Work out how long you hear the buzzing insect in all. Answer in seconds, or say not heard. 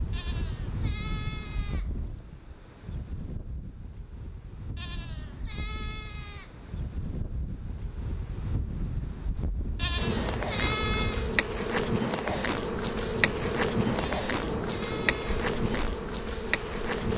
7 s.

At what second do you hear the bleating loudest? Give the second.
11 s.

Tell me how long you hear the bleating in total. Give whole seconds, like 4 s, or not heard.
7 s.